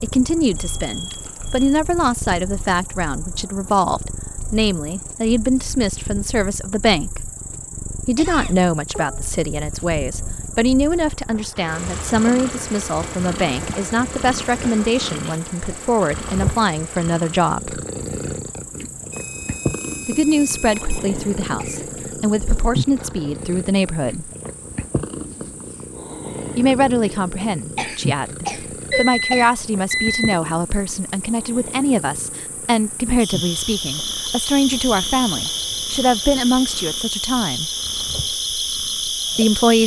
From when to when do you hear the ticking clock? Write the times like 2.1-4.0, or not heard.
not heard.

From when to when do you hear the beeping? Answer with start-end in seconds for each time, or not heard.
0.6-1.8, 19.1-21.1, 28.9-30.4.